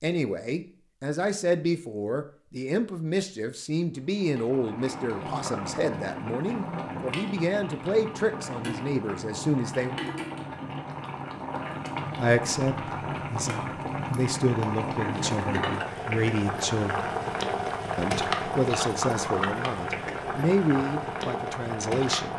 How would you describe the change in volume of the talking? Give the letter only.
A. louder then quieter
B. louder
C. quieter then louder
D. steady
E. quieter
D.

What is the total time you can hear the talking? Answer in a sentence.
You can hear the talking for 19 seconds altogether.